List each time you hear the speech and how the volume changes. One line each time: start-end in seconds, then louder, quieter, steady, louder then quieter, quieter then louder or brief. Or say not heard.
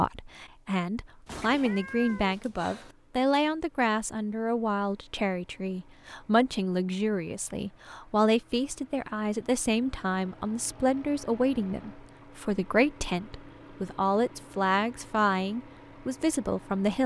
0.0-17.0 steady.